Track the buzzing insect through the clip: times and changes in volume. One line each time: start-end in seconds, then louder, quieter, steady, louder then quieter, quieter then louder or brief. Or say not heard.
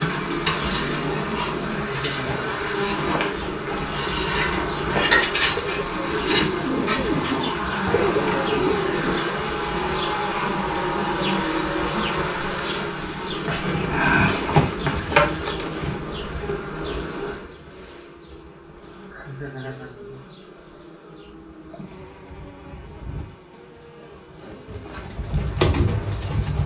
0.0-26.6 quieter.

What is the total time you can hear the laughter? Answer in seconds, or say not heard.
2 s.